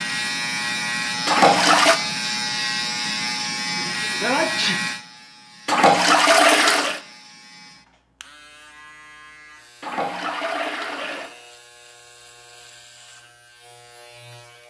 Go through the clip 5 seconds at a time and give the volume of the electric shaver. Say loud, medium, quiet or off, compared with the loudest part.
loud, quiet, quiet.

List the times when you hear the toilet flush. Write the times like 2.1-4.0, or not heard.
1.2-2.0, 5.7-7.0, 9.8-11.3.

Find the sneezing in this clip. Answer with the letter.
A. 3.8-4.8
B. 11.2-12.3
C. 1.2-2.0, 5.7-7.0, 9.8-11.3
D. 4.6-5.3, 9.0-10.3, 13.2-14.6
A.